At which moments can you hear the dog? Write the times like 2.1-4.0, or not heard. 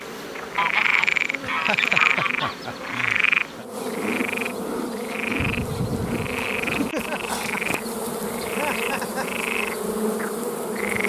not heard.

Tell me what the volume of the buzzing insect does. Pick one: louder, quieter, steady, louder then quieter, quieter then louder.
louder.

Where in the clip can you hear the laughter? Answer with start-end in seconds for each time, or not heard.
1.4-3.6, 6.7-9.2.